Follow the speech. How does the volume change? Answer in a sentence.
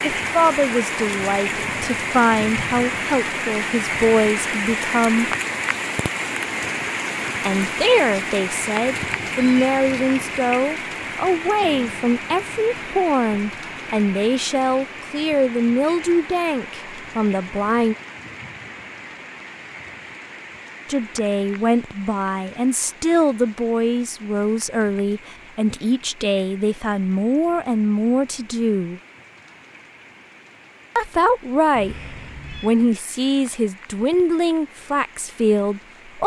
The loudness of the speech stays about the same.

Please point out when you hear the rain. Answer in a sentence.
You can hear the rain from 0.0 to 36.2 s.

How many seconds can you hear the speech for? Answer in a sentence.
The speech can be heard for 29 seconds in total.